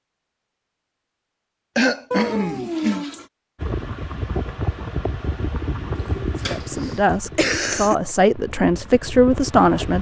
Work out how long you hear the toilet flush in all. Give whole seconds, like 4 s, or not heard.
2 s.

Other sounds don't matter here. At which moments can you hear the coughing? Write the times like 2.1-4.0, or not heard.
1.8-3.0, 6.8-8.0.